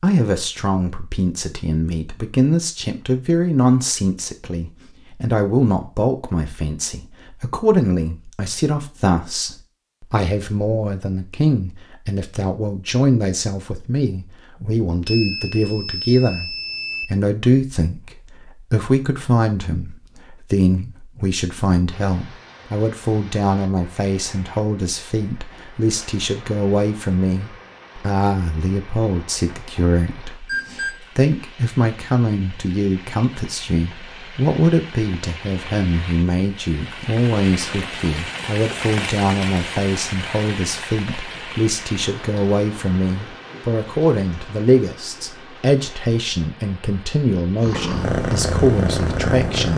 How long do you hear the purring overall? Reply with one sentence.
You can hear the purring for 2 seconds altogether.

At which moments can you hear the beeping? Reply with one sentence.
The beeping can be heard from 15.1 to 17.1 s and from 30.4 to 30.9 s.